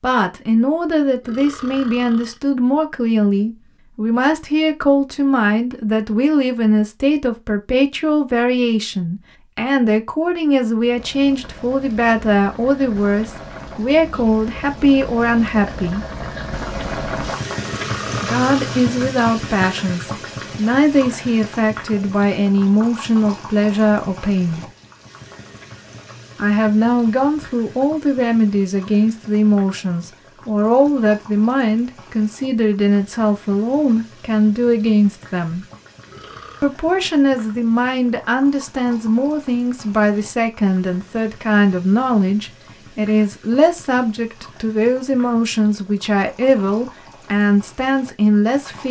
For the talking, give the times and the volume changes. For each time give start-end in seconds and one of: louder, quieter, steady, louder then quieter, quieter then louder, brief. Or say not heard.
0.0-16.1 steady
18.1-24.6 steady
26.4-35.6 steady
36.6-48.8 steady.